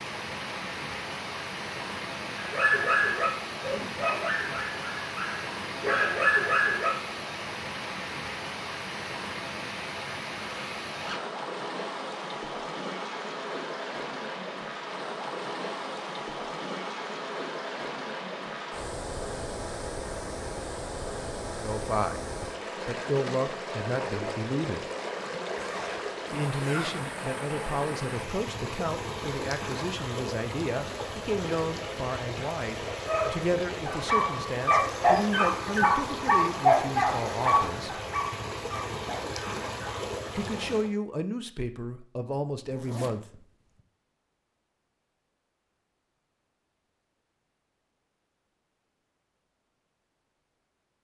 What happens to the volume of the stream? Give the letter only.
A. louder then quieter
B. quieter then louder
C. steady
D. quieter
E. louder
C.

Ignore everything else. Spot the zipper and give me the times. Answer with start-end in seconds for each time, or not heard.
10.9-11.3, 25.6-27.1, 42.6-43.8.